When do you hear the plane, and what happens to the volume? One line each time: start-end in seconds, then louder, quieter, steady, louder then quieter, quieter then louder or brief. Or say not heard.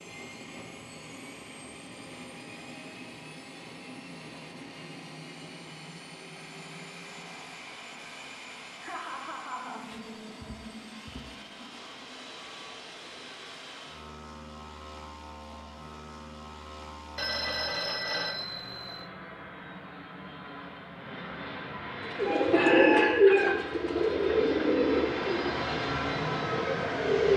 0.0-27.3 louder.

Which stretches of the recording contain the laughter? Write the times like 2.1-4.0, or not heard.
8.8-9.8.